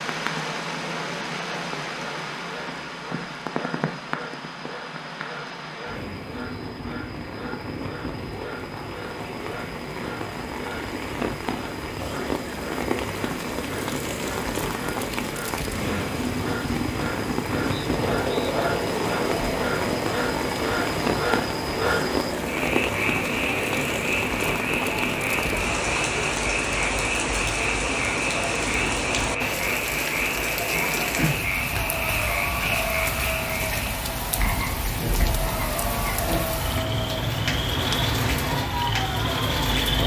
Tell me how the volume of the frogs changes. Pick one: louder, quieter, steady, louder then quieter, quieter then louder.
louder.